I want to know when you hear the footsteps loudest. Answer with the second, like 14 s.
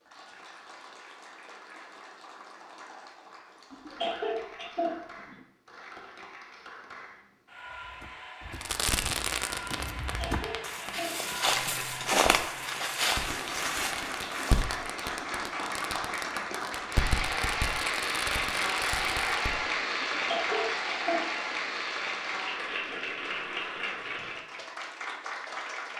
12 s.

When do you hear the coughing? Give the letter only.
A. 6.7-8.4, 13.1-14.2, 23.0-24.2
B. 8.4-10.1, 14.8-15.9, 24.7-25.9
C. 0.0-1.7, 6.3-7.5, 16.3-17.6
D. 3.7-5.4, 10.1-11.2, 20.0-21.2
D.